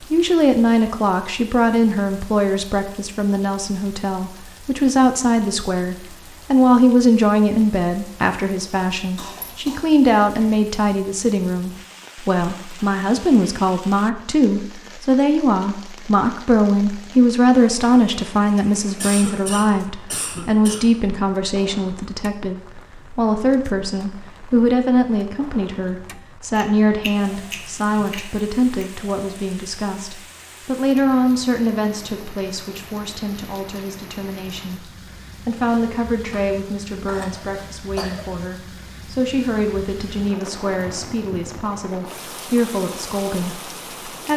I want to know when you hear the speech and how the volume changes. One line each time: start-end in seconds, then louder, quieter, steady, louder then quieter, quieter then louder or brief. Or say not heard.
0.0-44.3 quieter.